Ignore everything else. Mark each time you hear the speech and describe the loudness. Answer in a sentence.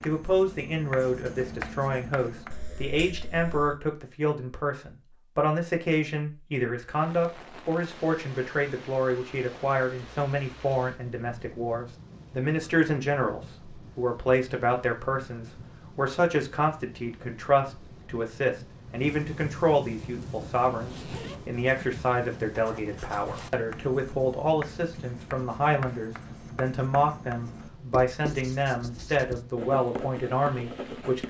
You can hear the speech from 0.1 to 31.2 s, at a steady volume.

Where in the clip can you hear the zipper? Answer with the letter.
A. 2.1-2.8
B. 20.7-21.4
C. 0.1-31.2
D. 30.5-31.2
B.